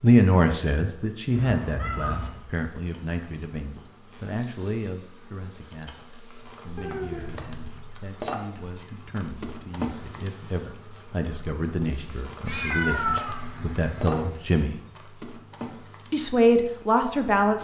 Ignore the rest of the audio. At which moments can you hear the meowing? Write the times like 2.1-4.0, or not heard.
1.3-2.4, 6.8-7.8, 12.4-14.3.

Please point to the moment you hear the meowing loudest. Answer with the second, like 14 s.
13 s.